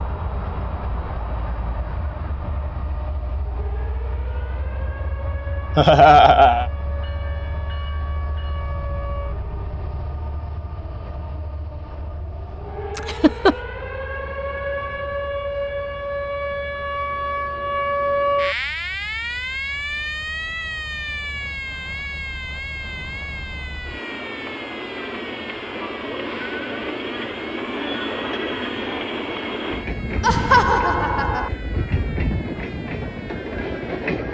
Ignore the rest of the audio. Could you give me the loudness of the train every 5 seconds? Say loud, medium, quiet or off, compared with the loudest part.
medium, medium, quiet, quiet, medium, loud, loud.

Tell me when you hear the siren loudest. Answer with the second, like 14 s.
18 s.